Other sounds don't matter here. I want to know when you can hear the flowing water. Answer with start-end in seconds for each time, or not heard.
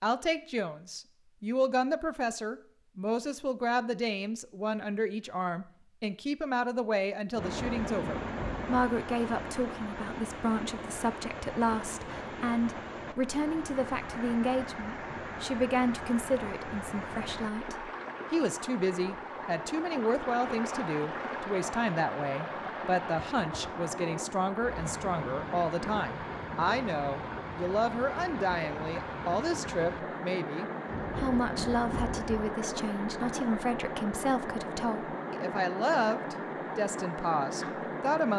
7.3-38.3.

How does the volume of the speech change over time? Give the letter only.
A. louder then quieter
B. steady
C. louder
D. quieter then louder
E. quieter
B.